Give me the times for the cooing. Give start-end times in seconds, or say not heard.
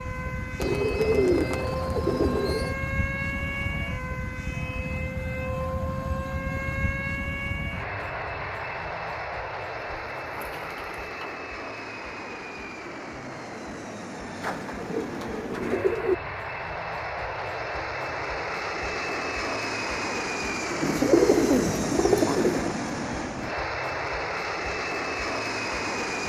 0.6-2.8, 9.9-11.3, 14.4-16.1, 20.8-22.8.